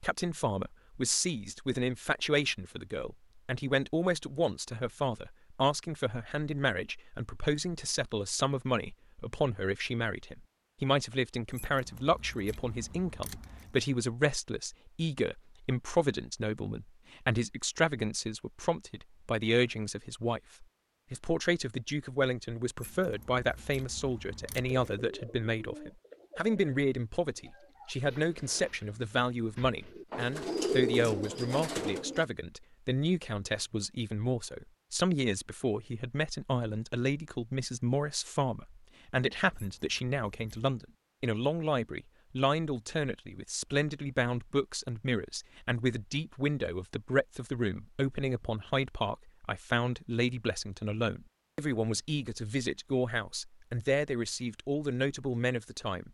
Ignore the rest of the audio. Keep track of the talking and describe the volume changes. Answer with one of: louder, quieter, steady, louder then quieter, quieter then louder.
steady.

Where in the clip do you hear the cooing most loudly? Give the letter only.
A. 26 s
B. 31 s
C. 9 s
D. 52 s
B.